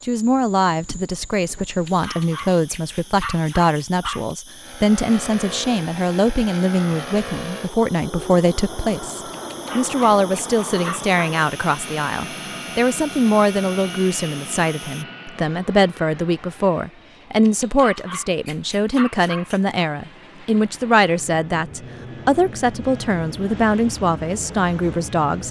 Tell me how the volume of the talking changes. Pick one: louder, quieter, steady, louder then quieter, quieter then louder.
steady.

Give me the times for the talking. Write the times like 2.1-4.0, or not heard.
0.0-25.4.